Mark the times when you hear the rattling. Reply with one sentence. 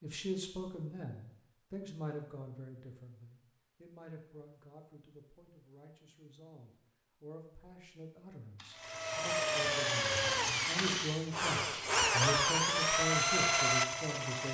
You can hear the rattling from 8.6 to 11.2 s.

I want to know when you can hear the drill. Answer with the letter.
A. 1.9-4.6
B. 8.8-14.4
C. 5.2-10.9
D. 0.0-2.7
B.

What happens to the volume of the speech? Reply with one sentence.
The loudness of the speech goes down, then up.